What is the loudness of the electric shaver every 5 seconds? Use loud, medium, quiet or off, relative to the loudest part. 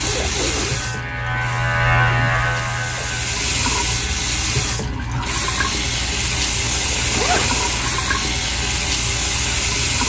loud, medium.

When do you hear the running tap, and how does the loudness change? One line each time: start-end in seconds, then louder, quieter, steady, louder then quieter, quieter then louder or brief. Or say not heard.
0.0-10.0 louder.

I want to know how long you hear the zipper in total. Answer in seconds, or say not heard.
2 s.